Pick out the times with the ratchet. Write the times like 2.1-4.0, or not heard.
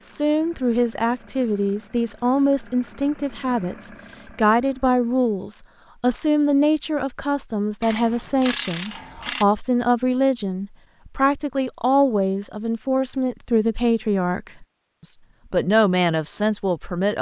7.8-9.4.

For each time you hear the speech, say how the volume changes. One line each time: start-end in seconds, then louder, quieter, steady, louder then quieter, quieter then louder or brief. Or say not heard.
0.0-17.1 steady.